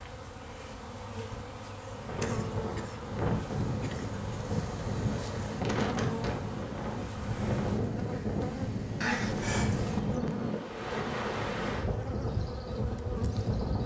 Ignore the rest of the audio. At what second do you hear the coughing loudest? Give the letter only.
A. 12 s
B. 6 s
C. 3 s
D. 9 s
D.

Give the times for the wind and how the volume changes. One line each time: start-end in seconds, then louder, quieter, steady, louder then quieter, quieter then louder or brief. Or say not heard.
1.9-13.8 steady.